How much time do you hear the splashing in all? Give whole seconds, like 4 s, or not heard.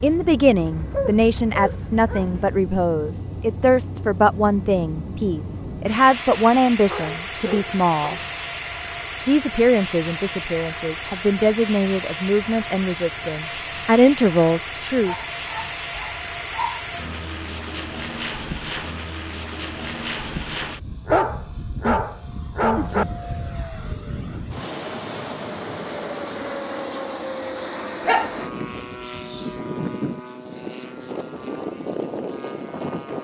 not heard.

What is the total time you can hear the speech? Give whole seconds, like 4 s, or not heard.
14 s.